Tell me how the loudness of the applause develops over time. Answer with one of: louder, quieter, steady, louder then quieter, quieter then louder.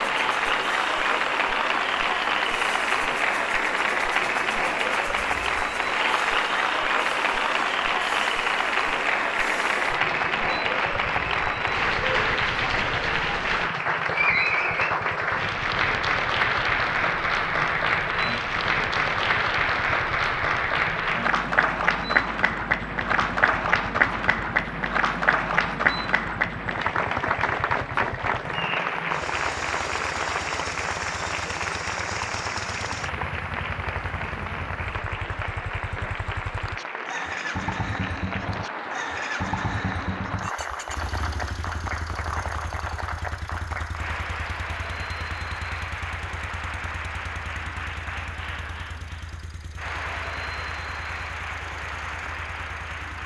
quieter.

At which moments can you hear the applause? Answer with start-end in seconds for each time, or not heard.
0.0-53.2.